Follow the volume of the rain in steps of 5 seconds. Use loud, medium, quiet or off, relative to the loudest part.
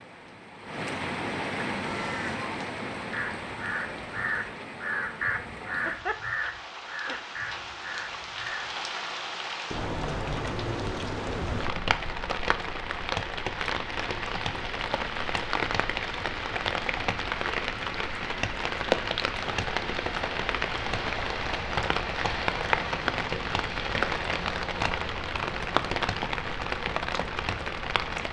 medium, medium, loud, loud, loud, loud.